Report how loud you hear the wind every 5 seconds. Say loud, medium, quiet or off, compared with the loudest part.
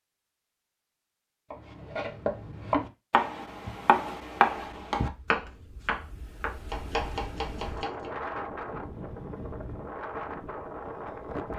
off, loud, loud.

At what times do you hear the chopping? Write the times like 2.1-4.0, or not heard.
1.5-8.1.